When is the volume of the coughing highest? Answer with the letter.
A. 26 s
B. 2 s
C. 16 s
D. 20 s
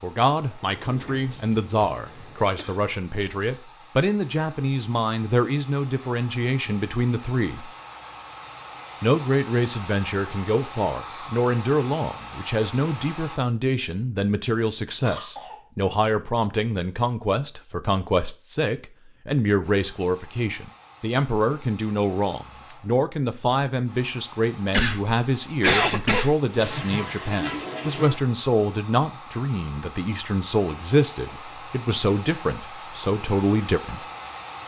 A.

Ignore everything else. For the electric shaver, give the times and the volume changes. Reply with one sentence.
The electric shaver can't be heard in this clip.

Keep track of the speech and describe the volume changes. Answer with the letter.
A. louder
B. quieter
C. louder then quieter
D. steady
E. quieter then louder
D.